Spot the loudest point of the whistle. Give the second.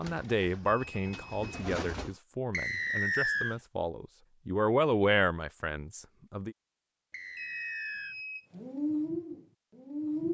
3 s.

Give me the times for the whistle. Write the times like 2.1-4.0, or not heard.
2.5-3.5, 7.1-8.2.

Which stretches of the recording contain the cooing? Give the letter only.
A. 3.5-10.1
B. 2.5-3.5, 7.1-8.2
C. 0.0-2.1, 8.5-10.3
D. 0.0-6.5
C.